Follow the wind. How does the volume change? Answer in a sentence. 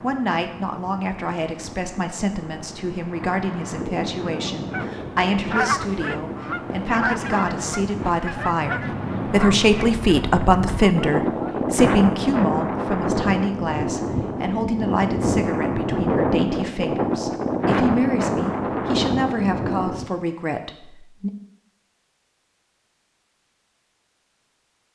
The loudness of the wind goes up.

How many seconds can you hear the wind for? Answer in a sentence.
You can hear the wind for 20 seconds altogether.